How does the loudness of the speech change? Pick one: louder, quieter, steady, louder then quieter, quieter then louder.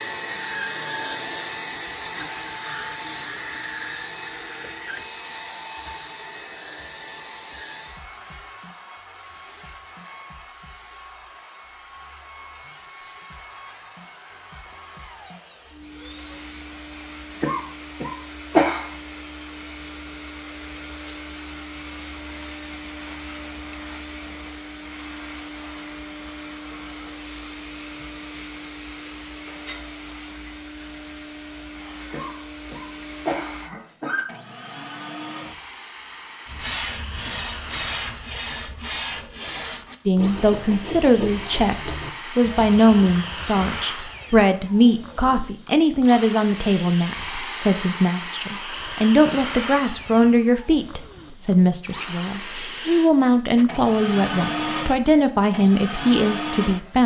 steady.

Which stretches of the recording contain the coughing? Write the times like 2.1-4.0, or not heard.
17.4-18.9, 32.1-34.2.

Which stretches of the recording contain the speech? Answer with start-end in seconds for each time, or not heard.
40.0-57.0.